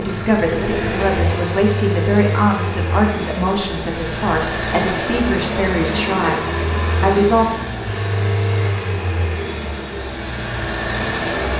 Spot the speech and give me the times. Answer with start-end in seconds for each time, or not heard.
0.0-7.5.